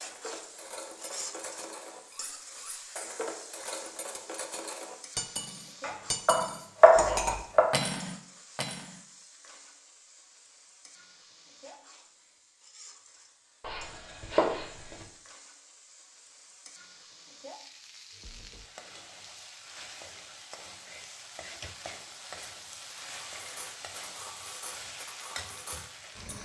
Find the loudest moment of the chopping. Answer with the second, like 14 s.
7 s.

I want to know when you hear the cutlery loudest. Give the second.
7 s.